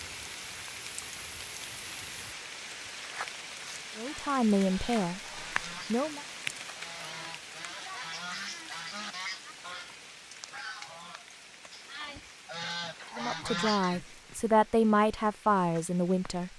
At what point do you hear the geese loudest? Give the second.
14 s.